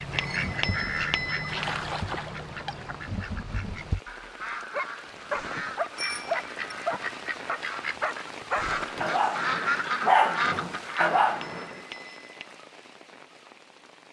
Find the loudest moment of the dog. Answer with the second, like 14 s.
10 s.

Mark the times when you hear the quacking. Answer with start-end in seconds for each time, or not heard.
0.0-11.4.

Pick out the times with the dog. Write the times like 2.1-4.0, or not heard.
4.7-11.8.